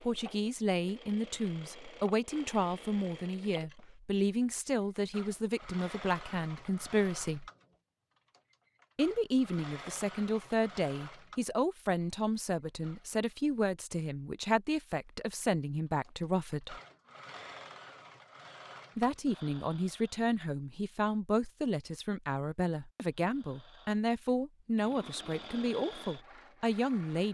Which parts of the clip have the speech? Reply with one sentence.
The speech can be heard from 0.0 to 7.5 s, from 8.9 to 16.8 s and from 18.9 to 27.2 s.